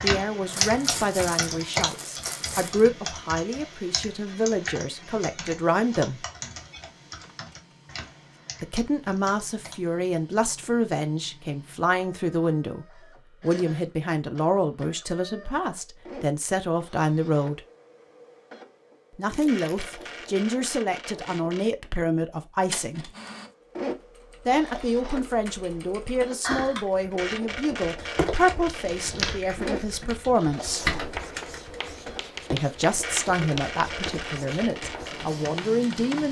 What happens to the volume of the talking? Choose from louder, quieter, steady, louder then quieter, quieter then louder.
steady.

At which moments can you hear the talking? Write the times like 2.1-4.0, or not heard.
0.0-6.2, 8.6-17.6, 19.1-23.1, 24.4-30.9, 32.5-36.2.